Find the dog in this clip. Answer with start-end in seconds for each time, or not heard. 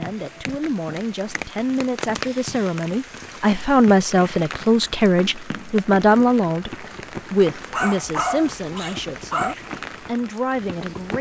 7.7-9.6.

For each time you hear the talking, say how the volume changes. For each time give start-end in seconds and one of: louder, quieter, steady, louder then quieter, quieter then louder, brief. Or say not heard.
0.0-11.1 louder then quieter.